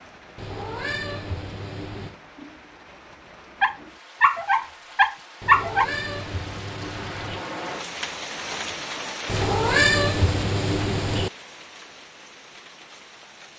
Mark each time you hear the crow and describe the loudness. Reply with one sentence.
The crow can't be heard in this clip.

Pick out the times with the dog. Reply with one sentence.
You can hear the dog from 3.6 to 5.8 s.